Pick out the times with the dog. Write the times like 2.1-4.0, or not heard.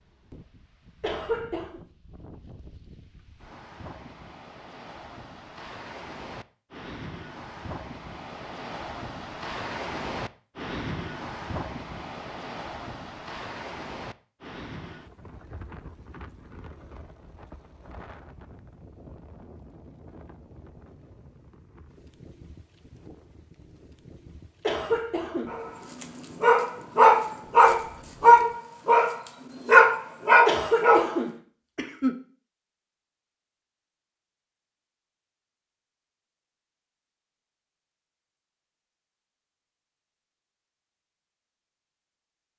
25.5-31.1.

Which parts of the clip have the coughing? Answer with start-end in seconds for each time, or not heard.
1.0-1.8, 24.6-25.5, 30.4-32.1.